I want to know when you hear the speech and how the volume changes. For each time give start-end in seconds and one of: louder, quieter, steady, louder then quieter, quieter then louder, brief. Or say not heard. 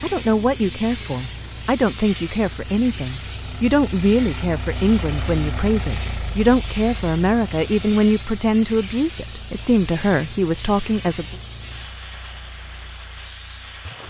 0.0-11.3 steady.